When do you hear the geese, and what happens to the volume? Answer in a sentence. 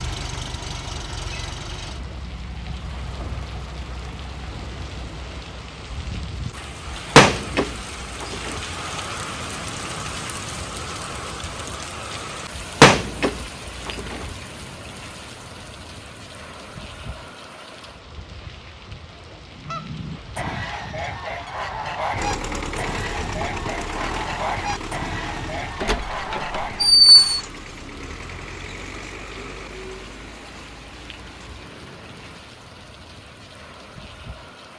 You can hear the geese from 19.5 to 26.9 s, at a steady volume.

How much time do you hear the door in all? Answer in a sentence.
The door can be heard for 4 seconds in total.